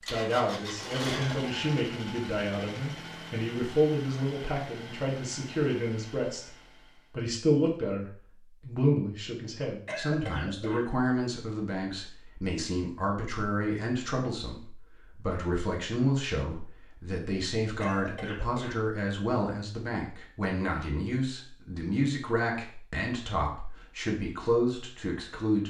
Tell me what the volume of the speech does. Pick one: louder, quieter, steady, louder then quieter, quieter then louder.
steady.